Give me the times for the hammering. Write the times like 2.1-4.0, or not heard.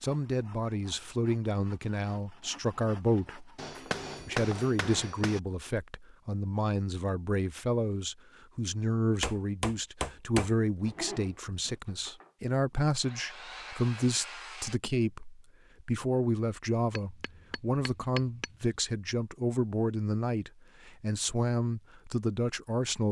3.5-5.4, 9.2-10.6, 16.9-18.8.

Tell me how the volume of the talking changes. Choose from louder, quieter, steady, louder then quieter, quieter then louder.
steady.